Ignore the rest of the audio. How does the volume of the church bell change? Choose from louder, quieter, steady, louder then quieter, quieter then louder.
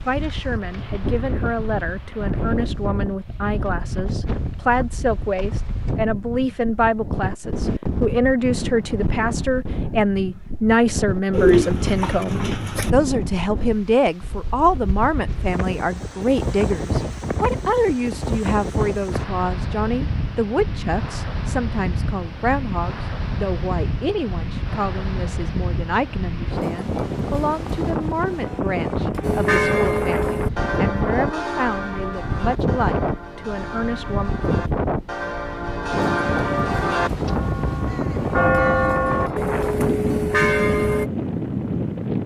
quieter then louder.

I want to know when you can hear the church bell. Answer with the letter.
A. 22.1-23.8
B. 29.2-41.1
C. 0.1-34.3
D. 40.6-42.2
B.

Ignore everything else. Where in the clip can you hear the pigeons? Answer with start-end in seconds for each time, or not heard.
11.3-12.9.